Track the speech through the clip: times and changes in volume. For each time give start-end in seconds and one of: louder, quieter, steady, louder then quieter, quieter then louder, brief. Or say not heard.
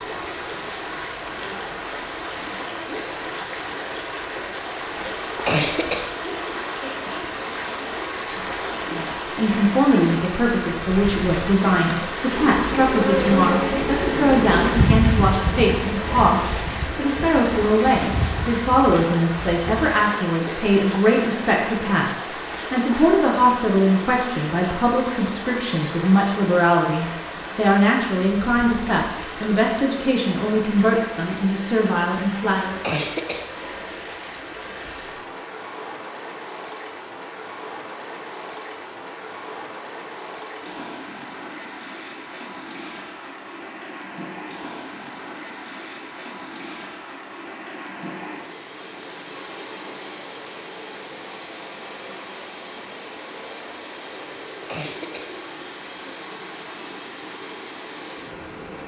8.9-32.8 steady.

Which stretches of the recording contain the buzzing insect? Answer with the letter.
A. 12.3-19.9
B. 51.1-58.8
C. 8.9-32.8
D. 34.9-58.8
A.